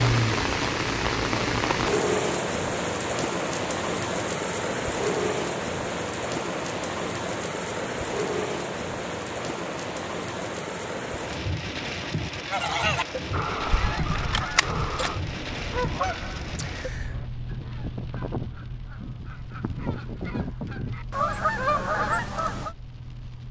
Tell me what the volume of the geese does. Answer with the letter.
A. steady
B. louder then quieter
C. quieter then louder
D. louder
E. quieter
C.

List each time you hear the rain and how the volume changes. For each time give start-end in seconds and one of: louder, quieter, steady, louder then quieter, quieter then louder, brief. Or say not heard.
0.0-23.4 quieter.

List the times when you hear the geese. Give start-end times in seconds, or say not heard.
12.4-22.8.